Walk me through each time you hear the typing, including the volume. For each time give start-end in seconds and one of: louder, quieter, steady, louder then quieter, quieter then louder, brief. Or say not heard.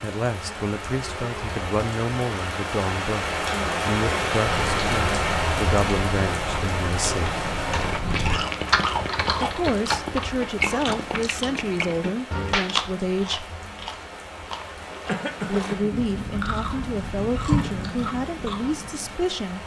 4.5-10.0 louder.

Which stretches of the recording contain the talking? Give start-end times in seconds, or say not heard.
0.0-7.4, 9.4-13.5, 15.4-19.6.